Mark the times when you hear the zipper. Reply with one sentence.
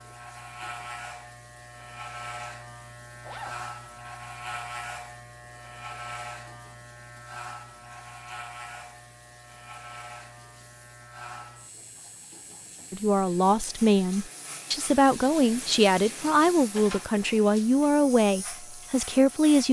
You can hear the zipper from 3.2 to 3.6 s.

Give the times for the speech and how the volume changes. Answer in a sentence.
You can hear the speech from 12.9 to 19.6 s, at a steady volume.